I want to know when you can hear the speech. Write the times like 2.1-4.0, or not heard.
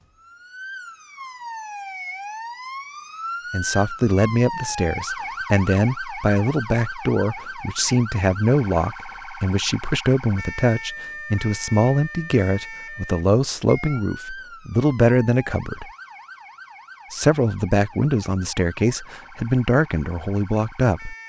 3.5-15.9, 17.1-21.1.